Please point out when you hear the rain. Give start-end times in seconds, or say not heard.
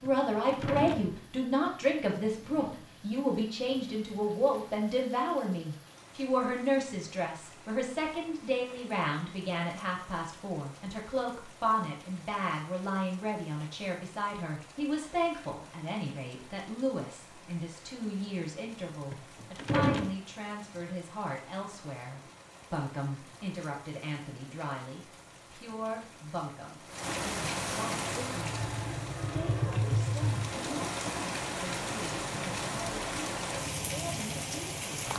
0.0-35.1.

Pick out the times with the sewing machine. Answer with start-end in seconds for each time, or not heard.
28.2-30.8.